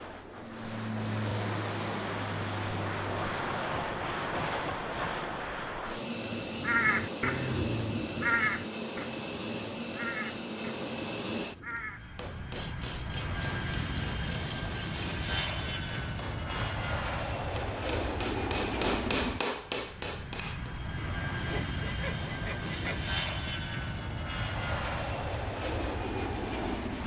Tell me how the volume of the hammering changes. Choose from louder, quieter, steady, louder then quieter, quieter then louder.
louder.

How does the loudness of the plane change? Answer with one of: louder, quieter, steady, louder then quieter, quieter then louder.
steady.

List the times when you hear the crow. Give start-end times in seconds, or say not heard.
6.1-12.1.